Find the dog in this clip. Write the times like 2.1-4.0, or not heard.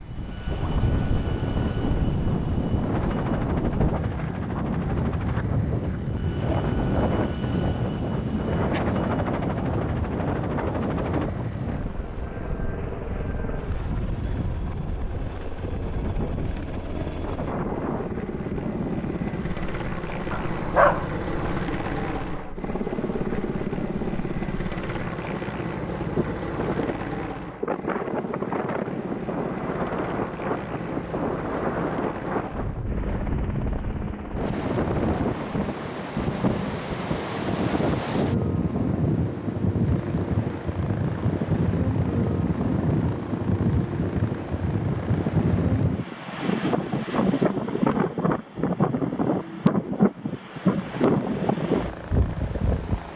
20.3-21.1.